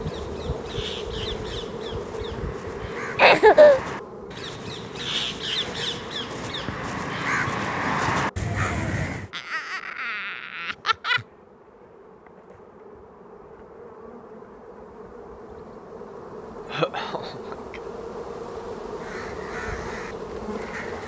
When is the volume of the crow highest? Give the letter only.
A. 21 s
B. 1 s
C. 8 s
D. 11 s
C.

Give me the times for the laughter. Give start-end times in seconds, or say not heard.
3.1-3.8, 9.3-11.2, 16.7-17.8.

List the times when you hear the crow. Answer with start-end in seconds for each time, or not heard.
0.0-9.3, 18.9-21.0.